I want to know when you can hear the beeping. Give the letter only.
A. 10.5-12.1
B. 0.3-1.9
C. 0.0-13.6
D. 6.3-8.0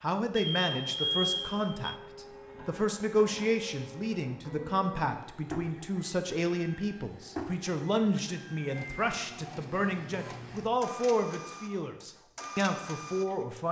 B.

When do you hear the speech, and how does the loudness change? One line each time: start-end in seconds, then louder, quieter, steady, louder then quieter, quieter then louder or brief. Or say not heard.
0.0-13.6 steady.